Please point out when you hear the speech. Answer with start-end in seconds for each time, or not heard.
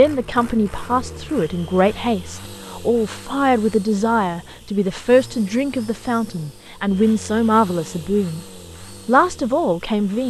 0.0-8.4, 9.1-10.2.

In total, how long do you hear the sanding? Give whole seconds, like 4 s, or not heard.
not heard.